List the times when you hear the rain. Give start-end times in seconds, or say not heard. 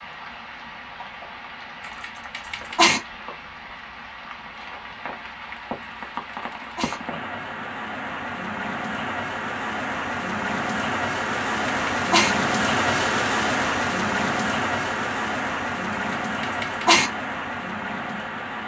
0.0-18.6.